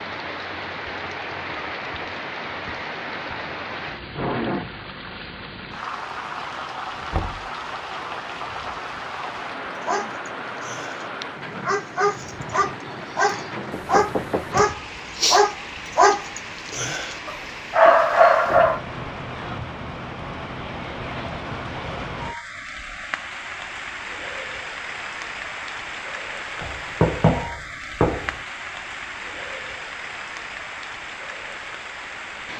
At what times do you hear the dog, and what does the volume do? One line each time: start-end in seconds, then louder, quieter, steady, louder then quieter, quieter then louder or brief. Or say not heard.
9.8-18.8 louder.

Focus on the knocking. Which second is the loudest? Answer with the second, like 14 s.
27 s.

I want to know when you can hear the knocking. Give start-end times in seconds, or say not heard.
7.1-7.5, 13.7-14.6, 26.6-28.4.